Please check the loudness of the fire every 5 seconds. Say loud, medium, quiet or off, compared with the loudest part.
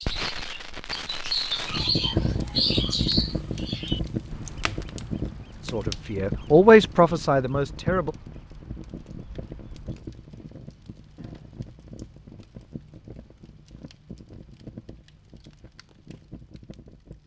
loud, medium, quiet, quiet.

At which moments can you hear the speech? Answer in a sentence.
You can hear the speech from 5.6 to 8.2 s.